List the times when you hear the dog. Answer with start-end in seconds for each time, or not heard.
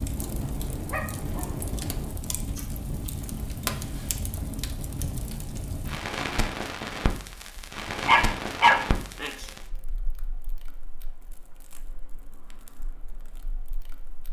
0.1-2.1, 8.1-9.4.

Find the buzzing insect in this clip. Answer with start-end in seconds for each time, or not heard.
not heard.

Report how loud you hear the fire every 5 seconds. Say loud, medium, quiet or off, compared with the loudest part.
loud, loud, quiet.